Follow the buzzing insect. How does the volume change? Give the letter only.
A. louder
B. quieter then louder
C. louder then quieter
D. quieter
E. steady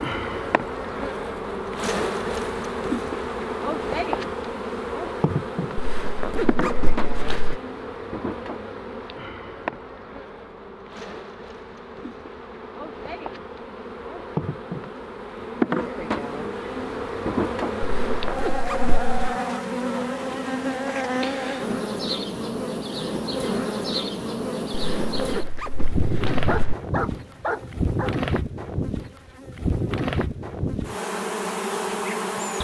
B.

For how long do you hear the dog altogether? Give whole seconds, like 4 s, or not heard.
2 s.